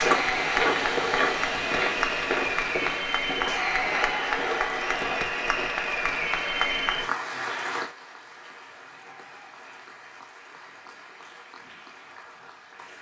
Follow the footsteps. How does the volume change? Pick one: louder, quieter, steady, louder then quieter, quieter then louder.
quieter.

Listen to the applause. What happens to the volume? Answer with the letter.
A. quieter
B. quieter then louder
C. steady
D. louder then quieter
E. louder
A.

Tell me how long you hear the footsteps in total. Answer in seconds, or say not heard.
6 s.